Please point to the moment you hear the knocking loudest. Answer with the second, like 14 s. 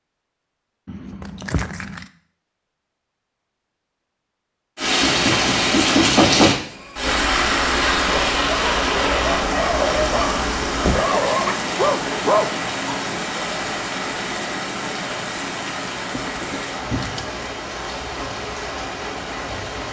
6 s.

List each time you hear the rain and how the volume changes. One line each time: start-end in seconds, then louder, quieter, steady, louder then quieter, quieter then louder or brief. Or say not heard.
4.8-19.8 quieter.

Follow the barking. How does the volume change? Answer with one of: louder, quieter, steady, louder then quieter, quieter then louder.
louder.